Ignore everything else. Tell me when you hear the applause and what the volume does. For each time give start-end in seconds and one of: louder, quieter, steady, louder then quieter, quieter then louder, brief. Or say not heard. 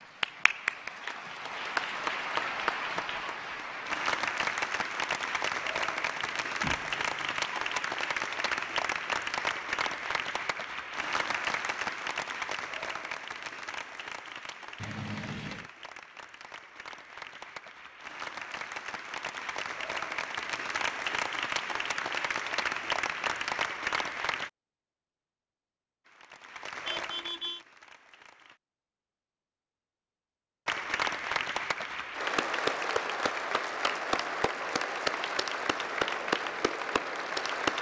0.0-24.5 quieter then louder
26.1-28.6 brief
30.6-37.7 steady.